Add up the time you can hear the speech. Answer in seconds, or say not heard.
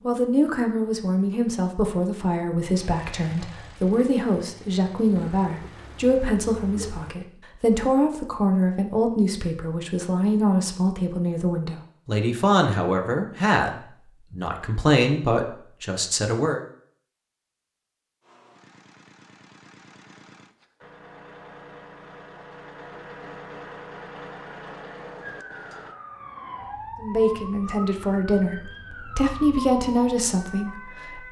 21 s.